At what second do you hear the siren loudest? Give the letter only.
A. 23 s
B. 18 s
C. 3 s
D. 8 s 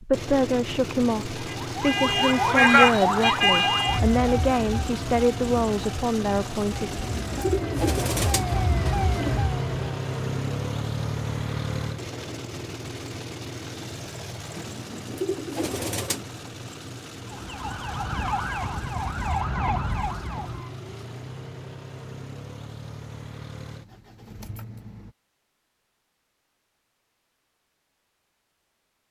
C.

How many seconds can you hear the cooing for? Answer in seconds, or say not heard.
4 s.